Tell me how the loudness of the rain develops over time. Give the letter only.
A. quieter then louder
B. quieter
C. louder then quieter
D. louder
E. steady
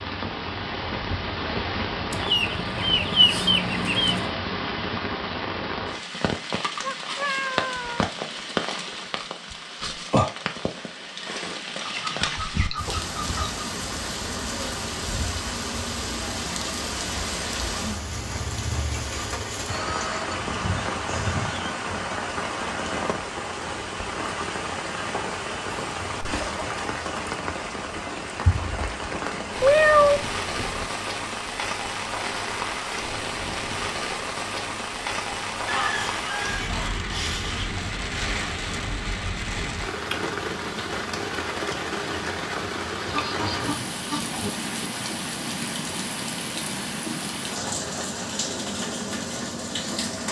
E.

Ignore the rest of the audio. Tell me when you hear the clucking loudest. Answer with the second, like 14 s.
3 s.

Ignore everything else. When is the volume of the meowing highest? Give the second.
30 s.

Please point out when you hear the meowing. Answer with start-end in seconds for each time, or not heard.
6.8-8.1, 29.6-30.9.